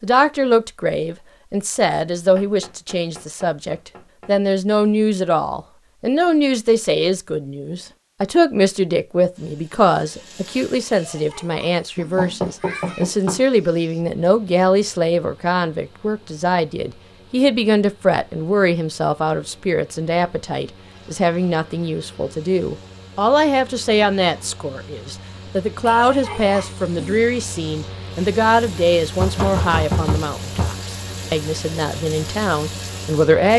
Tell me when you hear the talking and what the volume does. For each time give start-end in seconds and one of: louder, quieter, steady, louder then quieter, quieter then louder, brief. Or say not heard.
0.0-33.5 steady.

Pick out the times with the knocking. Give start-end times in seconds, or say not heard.
2.4-4.3, 11.9-13.4, 29.1-30.7.